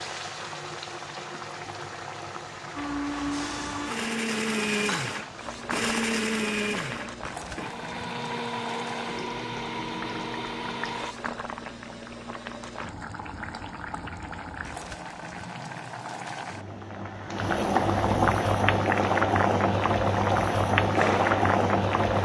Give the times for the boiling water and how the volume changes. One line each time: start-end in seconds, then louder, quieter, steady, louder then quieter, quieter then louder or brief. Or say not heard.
0.0-22.2 louder.